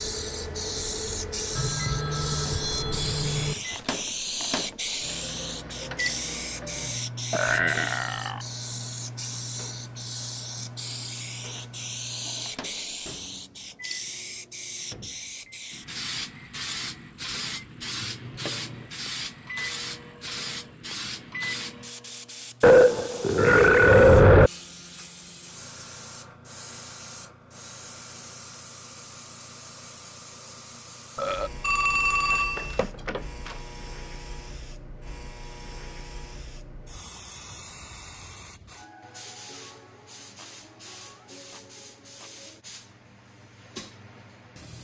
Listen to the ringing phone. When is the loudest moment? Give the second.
32 s.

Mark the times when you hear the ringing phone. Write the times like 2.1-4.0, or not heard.
1.6-3.5, 31.6-33.6.